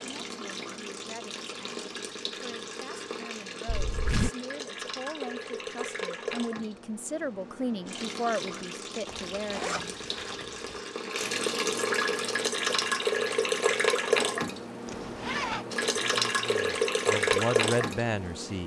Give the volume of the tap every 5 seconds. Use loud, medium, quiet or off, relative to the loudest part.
medium, medium, loud, loud.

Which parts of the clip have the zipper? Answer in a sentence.
The zipper can be heard from 3.6 to 4.3 s, from 9.1 to 10.8 s and from 14.8 to 15.7 s.